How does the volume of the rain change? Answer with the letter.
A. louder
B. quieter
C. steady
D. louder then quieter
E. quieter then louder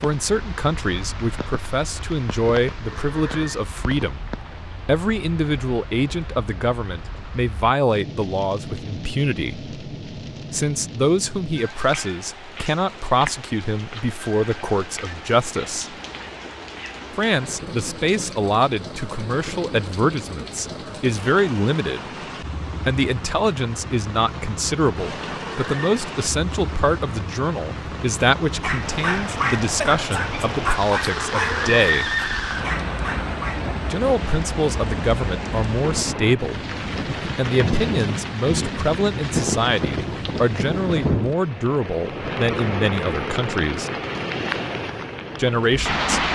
A.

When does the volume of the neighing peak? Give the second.
32 s.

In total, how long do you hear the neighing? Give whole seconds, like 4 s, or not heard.
4 s.